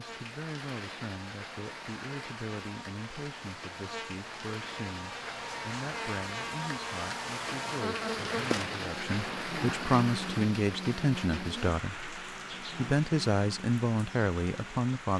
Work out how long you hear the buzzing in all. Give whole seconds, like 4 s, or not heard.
15 s.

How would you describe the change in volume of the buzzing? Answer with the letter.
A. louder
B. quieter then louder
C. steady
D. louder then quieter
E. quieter
D.